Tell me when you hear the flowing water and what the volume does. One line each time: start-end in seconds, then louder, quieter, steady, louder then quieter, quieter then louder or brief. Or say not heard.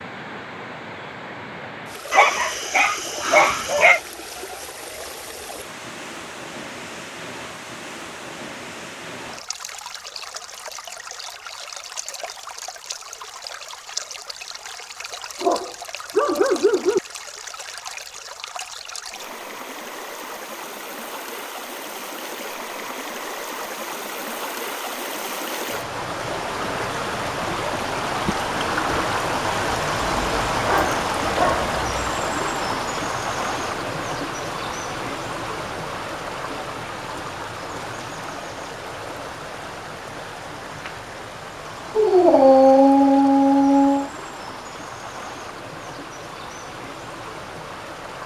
0.0-48.2 louder then quieter.